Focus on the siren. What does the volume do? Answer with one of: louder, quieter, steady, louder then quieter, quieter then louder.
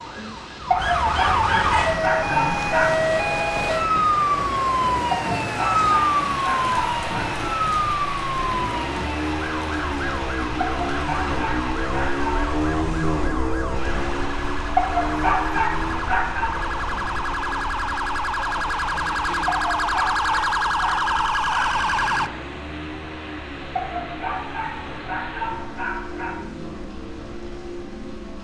quieter then louder.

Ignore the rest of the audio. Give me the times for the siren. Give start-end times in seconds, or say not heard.
0.0-22.3.